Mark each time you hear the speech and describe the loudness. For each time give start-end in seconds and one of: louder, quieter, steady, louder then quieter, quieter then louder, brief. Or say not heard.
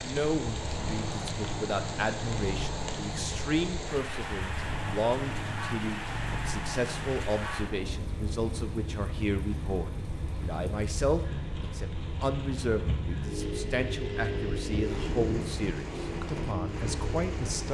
0.0-17.6 steady.